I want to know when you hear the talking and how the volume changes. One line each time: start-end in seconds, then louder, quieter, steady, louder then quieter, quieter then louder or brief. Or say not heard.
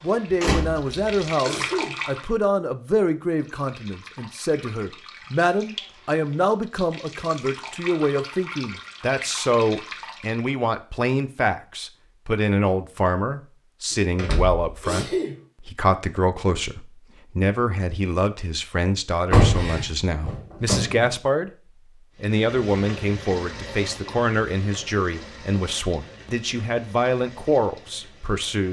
0.0-21.5 steady
22.2-28.6 steady.